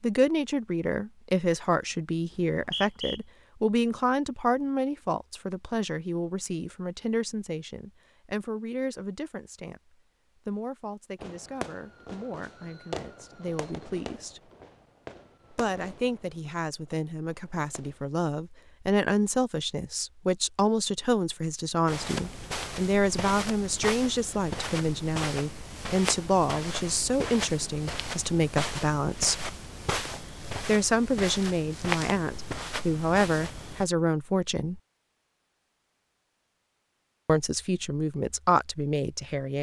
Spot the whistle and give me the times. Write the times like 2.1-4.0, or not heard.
2.3-3.2.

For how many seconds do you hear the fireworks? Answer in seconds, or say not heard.
7 s.